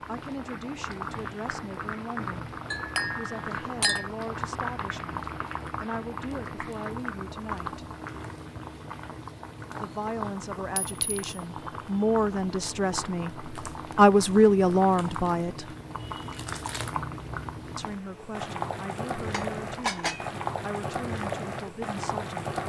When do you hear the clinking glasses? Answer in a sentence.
The clinking glasses can be heard from 2.7 to 4.0 s, from 10.8 to 11.2 s and from 19.3 to 20.3 s.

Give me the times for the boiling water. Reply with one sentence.
The boiling water can be heard from 0.0 to 22.6 s.